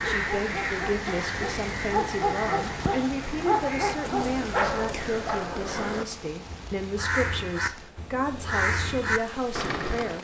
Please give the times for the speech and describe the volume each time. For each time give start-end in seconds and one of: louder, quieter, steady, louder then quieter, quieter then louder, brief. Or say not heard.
0.0-10.1 steady.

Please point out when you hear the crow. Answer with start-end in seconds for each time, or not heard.
0.0-10.1.